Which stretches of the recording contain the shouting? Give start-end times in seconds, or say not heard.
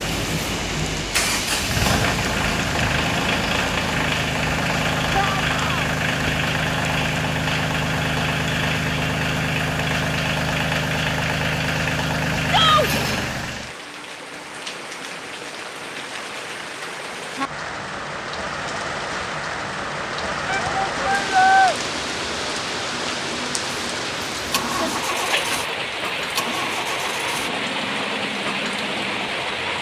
5.1-5.9, 12.4-12.9, 20.4-21.8.